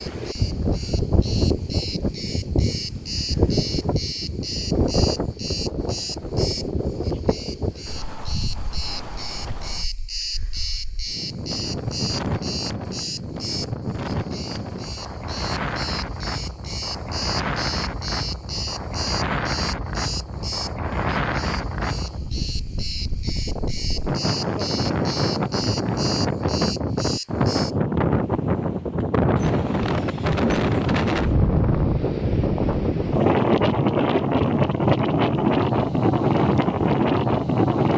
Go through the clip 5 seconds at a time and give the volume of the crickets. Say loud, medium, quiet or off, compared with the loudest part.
loud, loud, loud, loud, loud, loud, off, off.